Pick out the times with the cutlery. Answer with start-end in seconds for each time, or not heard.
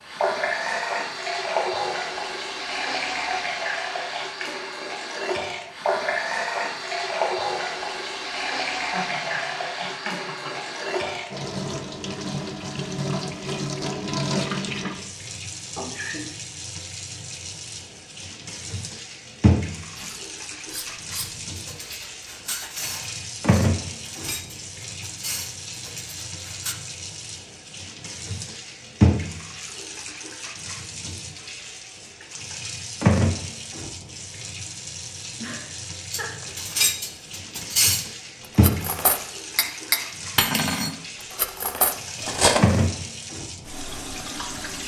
19.9-26.8, 36.1-42.6.